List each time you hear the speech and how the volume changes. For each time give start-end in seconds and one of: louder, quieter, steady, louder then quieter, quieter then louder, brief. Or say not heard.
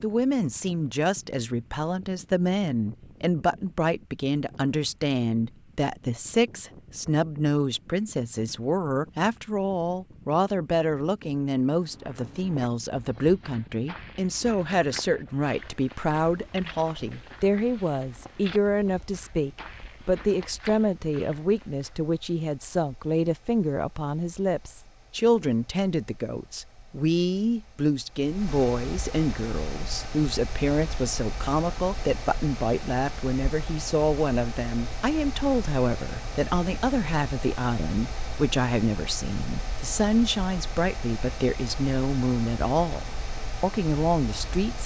0.0-44.8 steady.